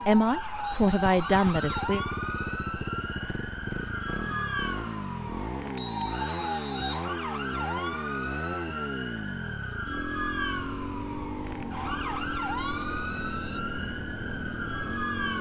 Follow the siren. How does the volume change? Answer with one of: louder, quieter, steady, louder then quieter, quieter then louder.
steady.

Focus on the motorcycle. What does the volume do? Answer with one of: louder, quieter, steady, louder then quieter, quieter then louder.
steady.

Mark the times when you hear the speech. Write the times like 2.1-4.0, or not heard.
0.1-2.0.